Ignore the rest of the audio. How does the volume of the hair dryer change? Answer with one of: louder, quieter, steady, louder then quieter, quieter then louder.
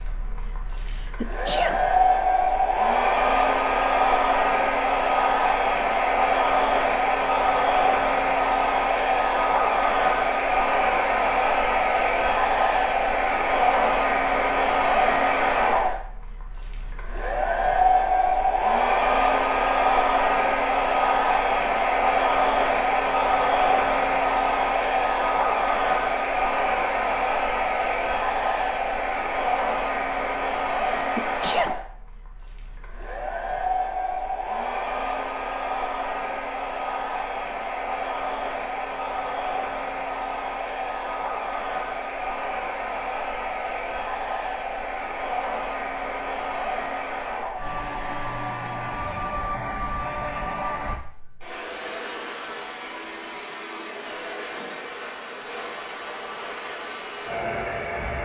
quieter.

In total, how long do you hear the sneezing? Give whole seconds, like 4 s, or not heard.
2 s.